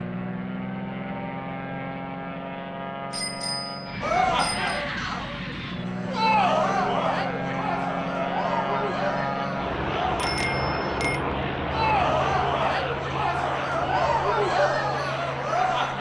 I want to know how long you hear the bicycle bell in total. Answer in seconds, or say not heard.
3 s.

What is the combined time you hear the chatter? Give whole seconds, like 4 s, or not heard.
12 s.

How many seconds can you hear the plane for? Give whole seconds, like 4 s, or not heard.
16 s.